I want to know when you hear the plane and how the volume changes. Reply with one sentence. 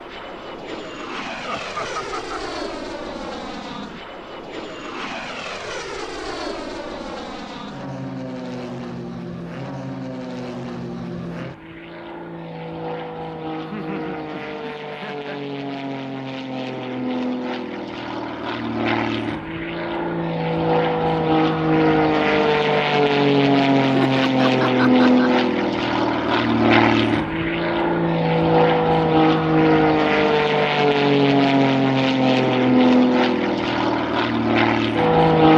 The plane can be heard from 0.0 to 35.5 s, getting louder.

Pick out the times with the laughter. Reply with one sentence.
The laughter can be heard from 1.4 to 2.5 s, from 13.6 to 15.4 s and from 23.8 to 25.3 s.